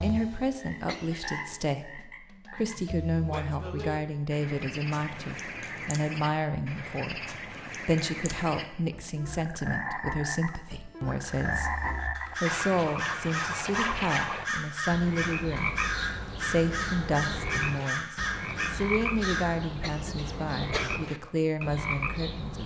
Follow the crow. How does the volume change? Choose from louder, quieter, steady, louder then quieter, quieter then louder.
steady.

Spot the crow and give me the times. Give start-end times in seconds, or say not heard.
11.2-19.4.